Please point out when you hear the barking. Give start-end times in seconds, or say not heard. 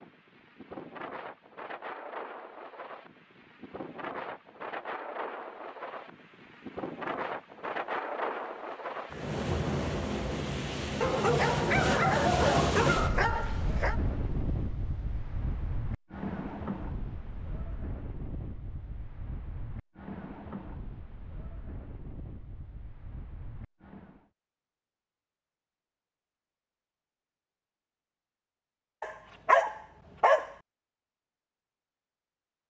11.0-14.0, 29.0-30.6.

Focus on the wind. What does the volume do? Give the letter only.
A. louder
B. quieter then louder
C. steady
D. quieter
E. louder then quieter
E.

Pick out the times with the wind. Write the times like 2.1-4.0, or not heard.
0.0-24.2.